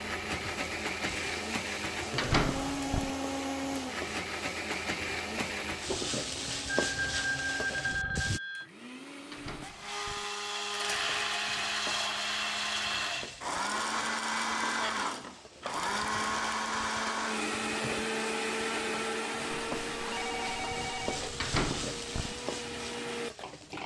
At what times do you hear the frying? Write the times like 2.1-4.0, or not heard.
0.0-8.4, 10.8-23.8.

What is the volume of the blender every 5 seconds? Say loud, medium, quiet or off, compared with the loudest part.
loud, medium, loud, loud, medium.